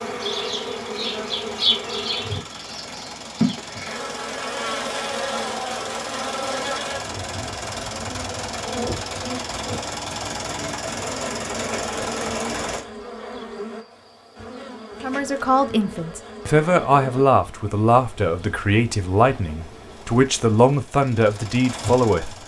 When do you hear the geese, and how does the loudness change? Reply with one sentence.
You can't hear the geese here.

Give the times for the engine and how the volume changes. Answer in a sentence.
You can hear the engine from 0.0 to 12.8 s, getting louder; and briefly from 19.9 to 22.4 s.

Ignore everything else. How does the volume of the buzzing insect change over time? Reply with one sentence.
The loudness of the buzzing insect goes down.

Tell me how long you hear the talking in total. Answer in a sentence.
You can hear the talking for 7 seconds altogether.